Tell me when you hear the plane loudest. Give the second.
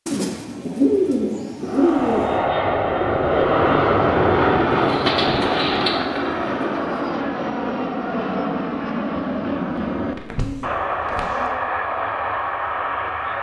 4 s.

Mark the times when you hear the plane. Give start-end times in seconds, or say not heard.
1.6-13.3.